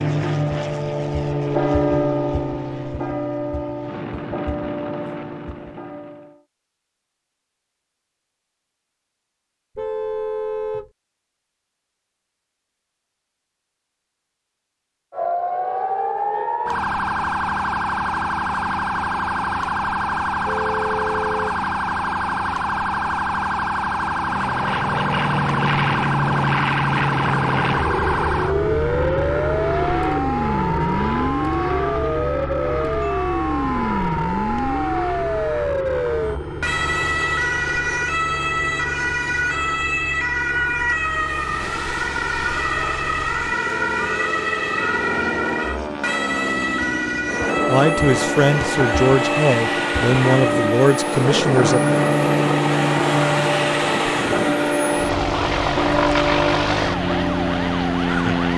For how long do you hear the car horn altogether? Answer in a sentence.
You can hear the car horn for 3 seconds altogether.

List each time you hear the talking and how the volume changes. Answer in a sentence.
The talking can be heard from 47.6 to 51.9 s, at a steady volume.